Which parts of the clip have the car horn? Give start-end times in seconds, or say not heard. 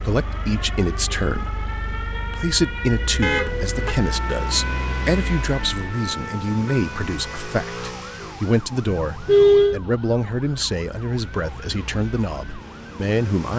3.2-4.0, 9.0-9.8.